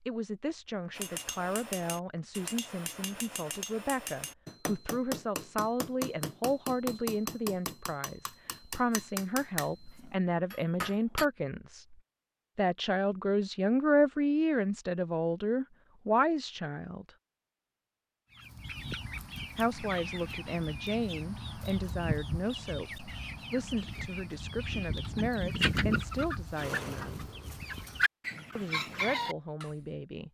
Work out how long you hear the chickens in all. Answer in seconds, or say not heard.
11 s.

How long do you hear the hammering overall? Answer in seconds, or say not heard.
10 s.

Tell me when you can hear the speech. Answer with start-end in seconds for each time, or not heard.
0.1-11.9, 12.6-17.1, 19.6-27.2, 28.6-30.2.